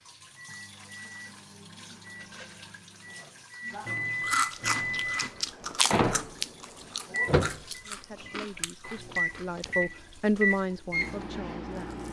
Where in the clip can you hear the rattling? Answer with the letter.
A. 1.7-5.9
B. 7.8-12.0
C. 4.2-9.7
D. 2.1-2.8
D.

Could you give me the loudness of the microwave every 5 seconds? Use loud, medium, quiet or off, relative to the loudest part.
medium, loud, loud.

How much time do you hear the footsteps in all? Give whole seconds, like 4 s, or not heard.
not heard.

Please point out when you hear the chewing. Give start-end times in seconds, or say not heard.
4.2-9.7.